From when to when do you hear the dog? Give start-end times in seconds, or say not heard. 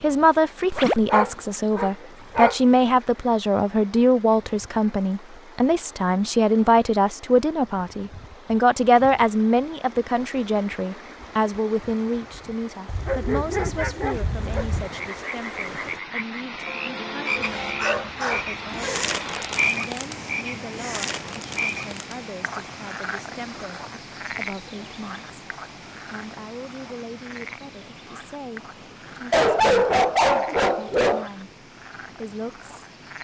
0.7-2.6, 12.8-14.9, 17.4-19.1, 29.3-31.3.